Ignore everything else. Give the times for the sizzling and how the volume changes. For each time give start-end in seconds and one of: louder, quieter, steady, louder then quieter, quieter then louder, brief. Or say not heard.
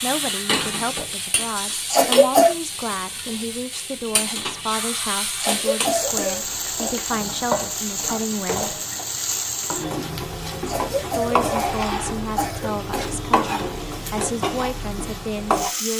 0.0-15.9 steady.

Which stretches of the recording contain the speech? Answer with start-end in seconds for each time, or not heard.
0.0-8.8, 11.1-15.9.